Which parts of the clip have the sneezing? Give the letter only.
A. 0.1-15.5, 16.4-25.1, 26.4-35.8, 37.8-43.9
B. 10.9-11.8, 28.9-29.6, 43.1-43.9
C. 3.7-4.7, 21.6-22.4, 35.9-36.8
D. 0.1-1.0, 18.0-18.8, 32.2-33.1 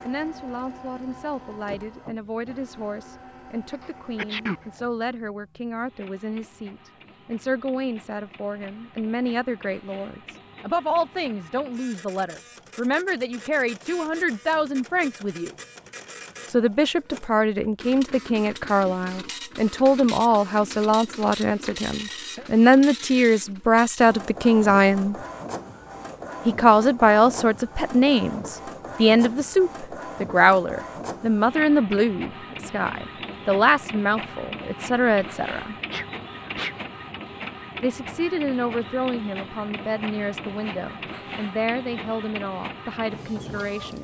C.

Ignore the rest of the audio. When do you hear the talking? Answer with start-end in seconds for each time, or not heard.
0.1-15.5, 16.4-25.1, 26.4-35.8, 37.8-43.9.